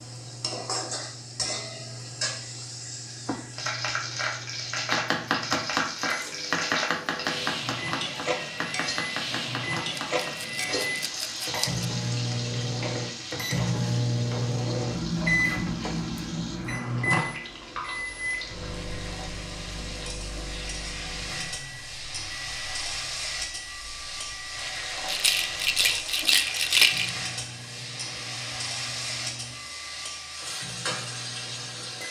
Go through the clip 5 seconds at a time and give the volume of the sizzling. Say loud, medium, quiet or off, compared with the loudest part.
loud, loud, loud, medium, loud, loud, loud.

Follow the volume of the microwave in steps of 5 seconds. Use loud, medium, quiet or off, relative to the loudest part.
quiet, medium, loud, loud, quiet, quiet, quiet.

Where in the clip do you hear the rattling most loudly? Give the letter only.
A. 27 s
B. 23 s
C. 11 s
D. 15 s
A.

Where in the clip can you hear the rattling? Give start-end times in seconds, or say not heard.
9.9-11.8, 25.1-27.1.